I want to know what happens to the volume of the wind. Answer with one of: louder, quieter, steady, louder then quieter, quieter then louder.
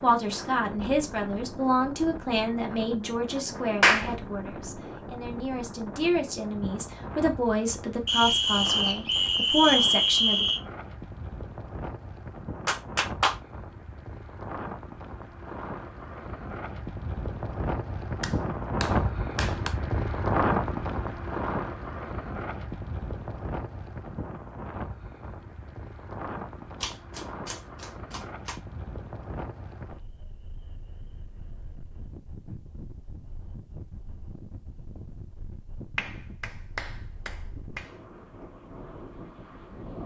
louder then quieter.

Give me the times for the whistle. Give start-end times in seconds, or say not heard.
8.1-10.6.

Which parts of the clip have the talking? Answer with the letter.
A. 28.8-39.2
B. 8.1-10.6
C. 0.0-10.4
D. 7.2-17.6
C.